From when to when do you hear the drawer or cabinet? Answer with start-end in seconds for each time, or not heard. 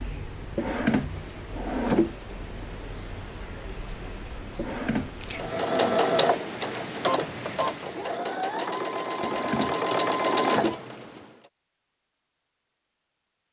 0.6-2.1, 4.5-6.0, 9.2-10.8.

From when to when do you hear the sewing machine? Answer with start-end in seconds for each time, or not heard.
5.3-11.2.